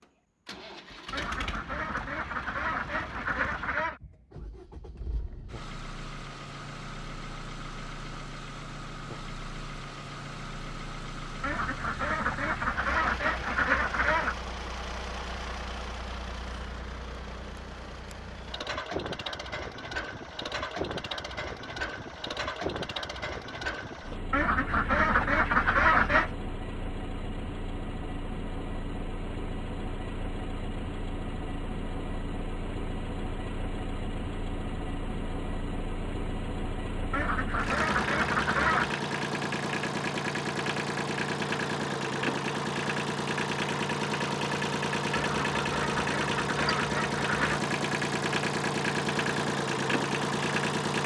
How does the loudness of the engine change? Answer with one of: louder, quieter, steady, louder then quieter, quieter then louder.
louder.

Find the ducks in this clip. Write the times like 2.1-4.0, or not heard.
1.1-4.0, 11.4-14.3, 24.3-26.3, 37.1-39.0, 45.1-47.6.